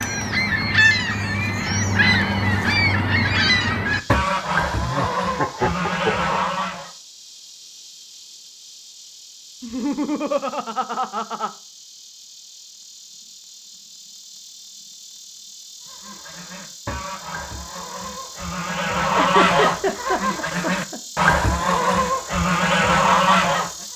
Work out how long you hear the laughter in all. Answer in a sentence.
You can hear the laughter for 5 seconds altogether.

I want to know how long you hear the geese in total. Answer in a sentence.
You can hear the geese for 15 seconds altogether.